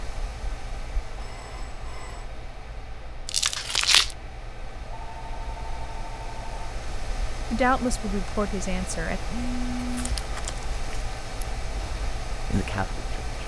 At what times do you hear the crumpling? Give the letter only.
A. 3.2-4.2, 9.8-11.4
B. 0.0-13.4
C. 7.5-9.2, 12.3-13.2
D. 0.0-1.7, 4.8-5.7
A.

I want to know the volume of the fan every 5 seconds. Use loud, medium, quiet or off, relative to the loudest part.
medium, loud, loud.